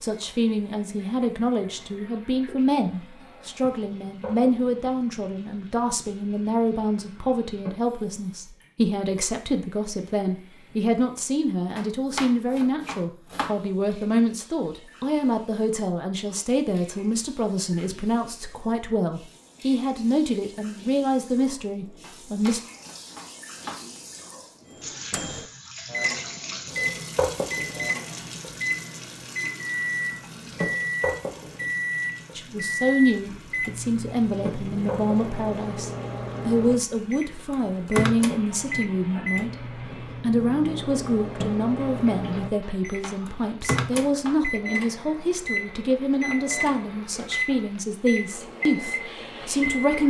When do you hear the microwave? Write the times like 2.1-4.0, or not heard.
24.8-50.0.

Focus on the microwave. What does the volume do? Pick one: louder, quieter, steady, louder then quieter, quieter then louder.
steady.